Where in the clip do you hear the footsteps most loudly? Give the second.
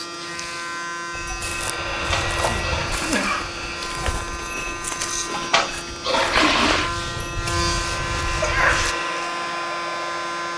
6 s.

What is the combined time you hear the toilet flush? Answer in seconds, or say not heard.
3 s.